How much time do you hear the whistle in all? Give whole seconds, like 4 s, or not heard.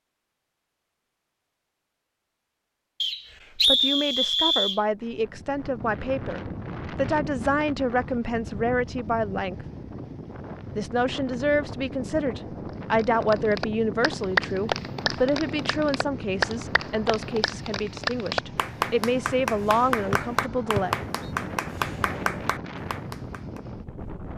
2 s.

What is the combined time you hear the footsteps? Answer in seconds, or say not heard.
not heard.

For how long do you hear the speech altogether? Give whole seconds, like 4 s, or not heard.
16 s.